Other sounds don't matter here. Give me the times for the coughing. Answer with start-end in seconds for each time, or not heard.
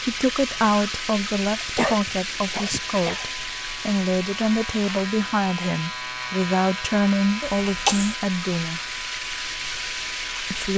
1.6-3.3, 7.4-8.2.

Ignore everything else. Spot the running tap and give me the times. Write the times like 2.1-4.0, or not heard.
0.0-10.7.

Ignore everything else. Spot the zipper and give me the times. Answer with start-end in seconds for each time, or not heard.
not heard.